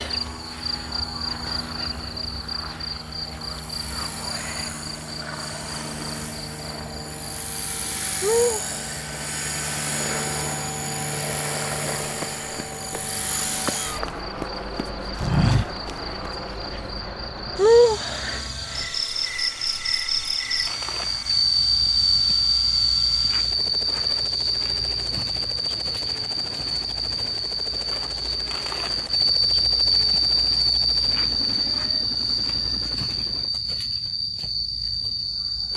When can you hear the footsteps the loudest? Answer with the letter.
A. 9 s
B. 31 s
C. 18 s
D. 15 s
D.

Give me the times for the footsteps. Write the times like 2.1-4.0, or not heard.
11.8-16.7.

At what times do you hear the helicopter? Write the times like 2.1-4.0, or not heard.
0.0-33.5.